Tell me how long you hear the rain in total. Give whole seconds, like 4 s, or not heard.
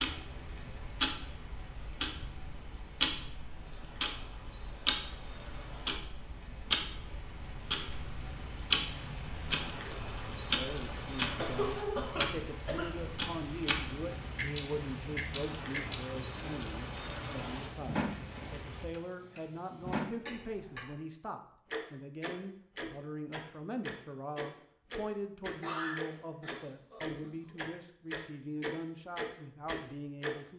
19 s.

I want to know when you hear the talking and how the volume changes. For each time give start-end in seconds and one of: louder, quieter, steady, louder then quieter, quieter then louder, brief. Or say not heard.
10.5-30.5 steady.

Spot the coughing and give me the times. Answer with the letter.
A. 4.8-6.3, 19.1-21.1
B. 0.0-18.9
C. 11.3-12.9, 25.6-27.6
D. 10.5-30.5
C.